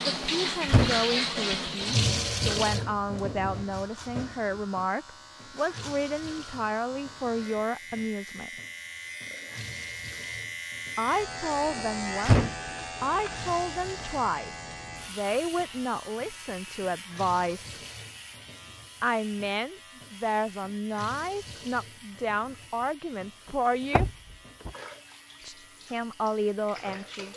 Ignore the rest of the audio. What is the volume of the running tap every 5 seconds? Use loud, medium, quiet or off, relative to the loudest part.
loud, quiet, quiet, quiet, quiet, quiet.